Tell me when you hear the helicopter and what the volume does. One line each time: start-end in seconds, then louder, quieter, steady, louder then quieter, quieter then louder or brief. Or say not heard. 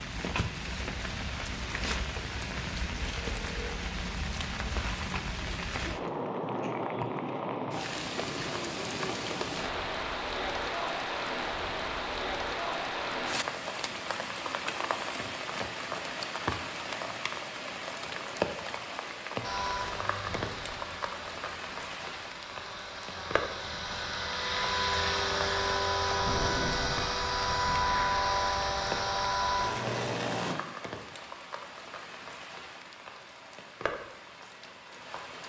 19.4-30.6 louder.